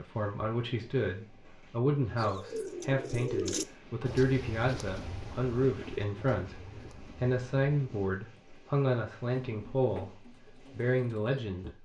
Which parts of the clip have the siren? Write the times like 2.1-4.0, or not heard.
not heard.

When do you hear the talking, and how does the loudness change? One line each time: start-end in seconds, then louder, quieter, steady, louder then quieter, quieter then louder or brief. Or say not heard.
0.0-11.8 steady.